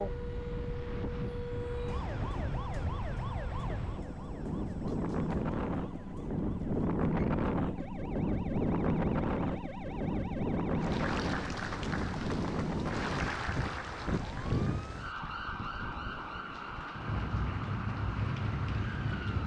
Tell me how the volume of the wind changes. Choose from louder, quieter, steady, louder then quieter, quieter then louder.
louder then quieter.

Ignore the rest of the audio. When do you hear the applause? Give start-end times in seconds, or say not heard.
10.8-19.4.